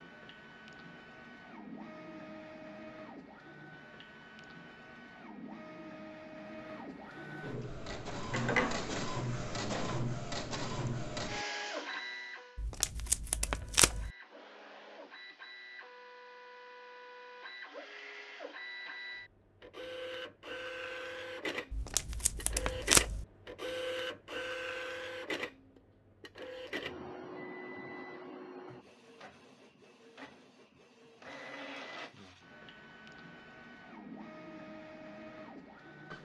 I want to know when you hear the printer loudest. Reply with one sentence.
The loudest moment of the printer is at 9 seconds.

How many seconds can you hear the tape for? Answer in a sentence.
You can hear the tape for 3 seconds altogether.